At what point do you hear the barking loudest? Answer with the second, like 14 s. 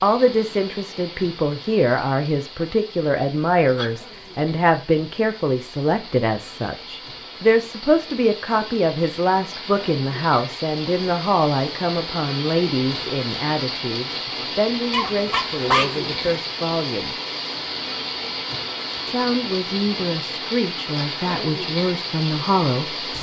16 s.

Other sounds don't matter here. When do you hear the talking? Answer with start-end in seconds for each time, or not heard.
0.0-17.2, 19.1-23.1.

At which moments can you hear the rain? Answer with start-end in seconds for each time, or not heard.
0.0-23.1.